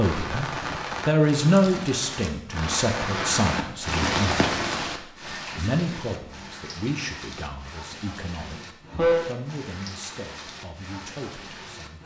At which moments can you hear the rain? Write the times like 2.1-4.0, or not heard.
0.0-12.0.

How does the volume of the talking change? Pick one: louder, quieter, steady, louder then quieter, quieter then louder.
quieter.